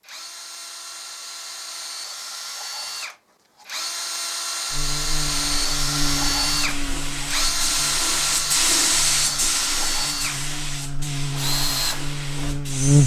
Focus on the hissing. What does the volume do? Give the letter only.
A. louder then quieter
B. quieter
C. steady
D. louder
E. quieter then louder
A.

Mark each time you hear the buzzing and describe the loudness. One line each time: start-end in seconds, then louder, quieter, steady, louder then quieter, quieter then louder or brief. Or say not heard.
4.7-13.0 quieter then louder.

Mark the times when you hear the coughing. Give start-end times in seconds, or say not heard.
not heard.